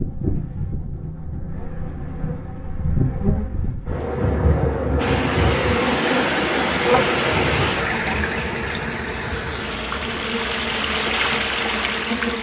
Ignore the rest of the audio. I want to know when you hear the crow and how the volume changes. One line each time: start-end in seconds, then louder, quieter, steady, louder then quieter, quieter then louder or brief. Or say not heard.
not heard.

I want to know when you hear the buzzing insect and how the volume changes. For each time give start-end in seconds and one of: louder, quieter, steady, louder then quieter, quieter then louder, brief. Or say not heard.
0.0-12.3 louder then quieter.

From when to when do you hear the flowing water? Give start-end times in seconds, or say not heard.
5.0-12.3.